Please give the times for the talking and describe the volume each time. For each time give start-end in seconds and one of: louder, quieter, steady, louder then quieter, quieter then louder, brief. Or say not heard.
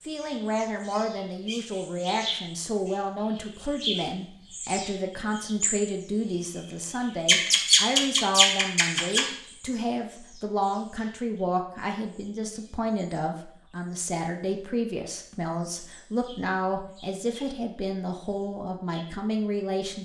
0.1-19.9 steady.